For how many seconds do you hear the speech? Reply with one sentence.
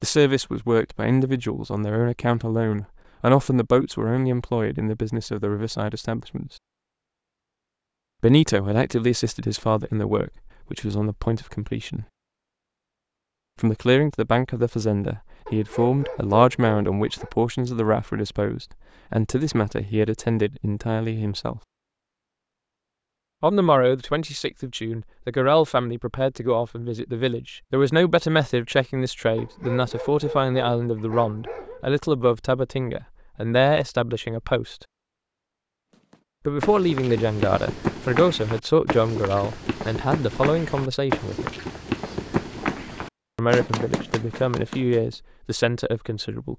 The speech can be heard for 38 seconds in total.